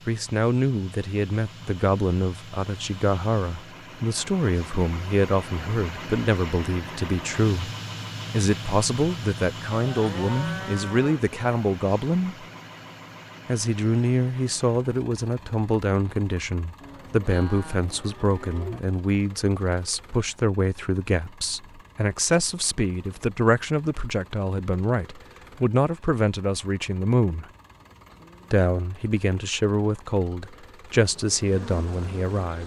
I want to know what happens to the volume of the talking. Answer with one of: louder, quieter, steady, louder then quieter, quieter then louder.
steady.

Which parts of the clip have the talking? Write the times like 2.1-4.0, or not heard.
0.1-7.7, 8.3-12.4, 13.4-27.4, 28.5-32.6.